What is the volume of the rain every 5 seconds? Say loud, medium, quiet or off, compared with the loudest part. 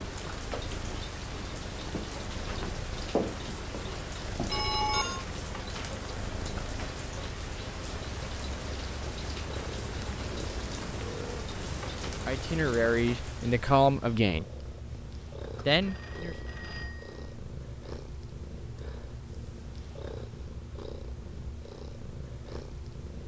loud, loud, loud, off, off.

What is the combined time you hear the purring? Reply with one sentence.
The purring can be heard for 23 seconds in total.